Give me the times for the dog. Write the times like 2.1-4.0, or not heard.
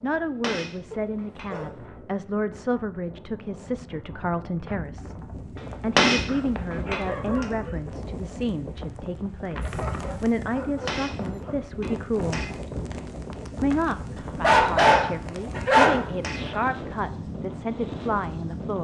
0.9-1.8, 6.2-7.8, 9.6-11.6, 14.4-16.6.